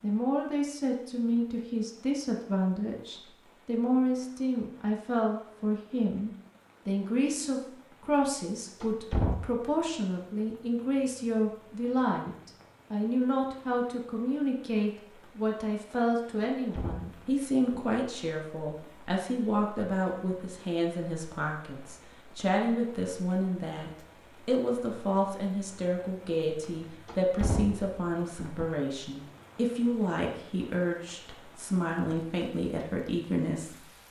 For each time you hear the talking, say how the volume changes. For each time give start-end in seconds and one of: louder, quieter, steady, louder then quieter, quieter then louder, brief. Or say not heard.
0.0-33.9 steady.